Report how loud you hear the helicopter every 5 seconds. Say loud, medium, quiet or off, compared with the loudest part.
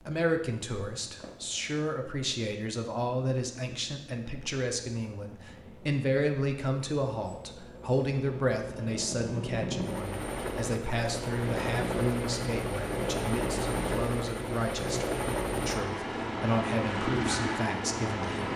quiet, medium, loud, loud.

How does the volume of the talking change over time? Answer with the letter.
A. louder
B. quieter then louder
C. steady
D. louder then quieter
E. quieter
C.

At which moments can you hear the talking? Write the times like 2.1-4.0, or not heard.
0.0-18.5.